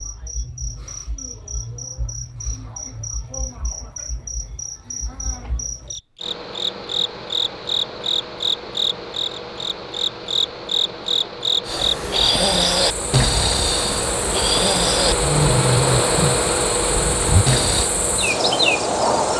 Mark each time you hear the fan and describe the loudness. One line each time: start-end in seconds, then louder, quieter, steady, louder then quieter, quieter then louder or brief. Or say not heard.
6.2-19.3 louder.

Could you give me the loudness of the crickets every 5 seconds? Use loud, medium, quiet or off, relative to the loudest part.
medium, loud, loud, loud.